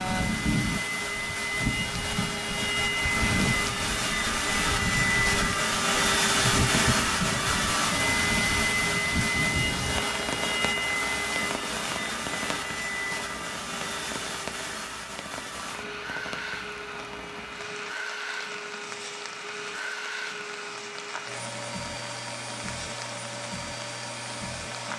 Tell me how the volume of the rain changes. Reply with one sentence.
The volume of the rain goes down.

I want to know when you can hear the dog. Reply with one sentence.
You can't hear the dog here.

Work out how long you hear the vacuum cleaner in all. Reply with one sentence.
You can hear the vacuum cleaner for 25 seconds altogether.